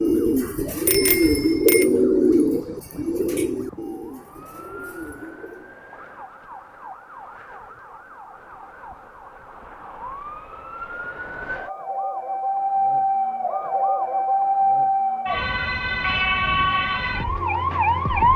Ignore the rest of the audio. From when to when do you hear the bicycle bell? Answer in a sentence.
You can hear the bicycle bell from 0.8 to 1.9 s.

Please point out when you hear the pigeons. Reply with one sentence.
You can hear the pigeons from 0.0 to 5.8 s.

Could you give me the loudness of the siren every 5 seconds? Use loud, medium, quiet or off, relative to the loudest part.
quiet, quiet, loud, loud.